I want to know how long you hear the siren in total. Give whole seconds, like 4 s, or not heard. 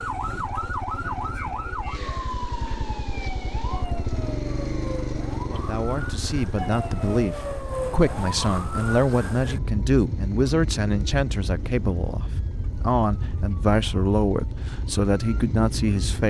16 s.